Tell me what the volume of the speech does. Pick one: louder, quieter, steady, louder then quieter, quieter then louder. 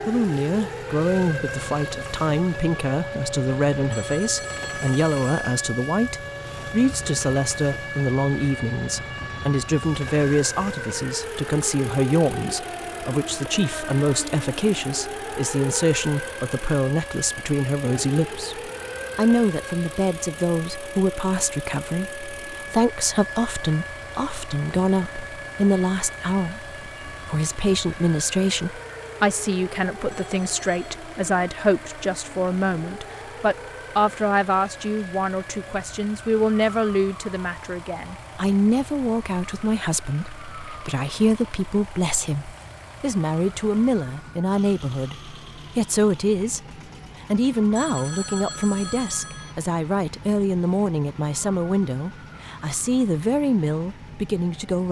steady.